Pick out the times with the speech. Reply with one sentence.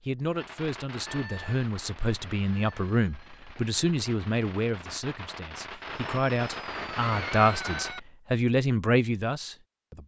The speech can be heard from 0.1 to 10.0 s.